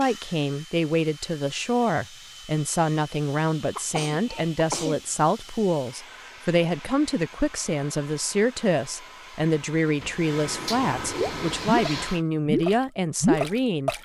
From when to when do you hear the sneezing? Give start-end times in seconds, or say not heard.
3.8-5.0, 10.7-12.2.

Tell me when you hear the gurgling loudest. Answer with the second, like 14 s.
13 s.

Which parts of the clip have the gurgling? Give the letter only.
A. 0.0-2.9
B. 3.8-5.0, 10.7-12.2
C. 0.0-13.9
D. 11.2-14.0
D.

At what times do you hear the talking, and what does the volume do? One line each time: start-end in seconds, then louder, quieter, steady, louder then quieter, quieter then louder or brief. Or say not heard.
0.0-13.9 steady.